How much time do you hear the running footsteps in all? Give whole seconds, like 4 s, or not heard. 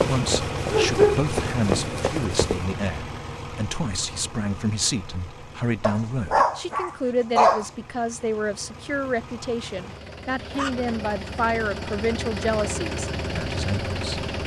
3 s.